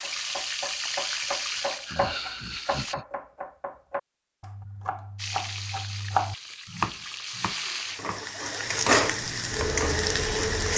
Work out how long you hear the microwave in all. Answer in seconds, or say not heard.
2 s.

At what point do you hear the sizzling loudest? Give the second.
9 s.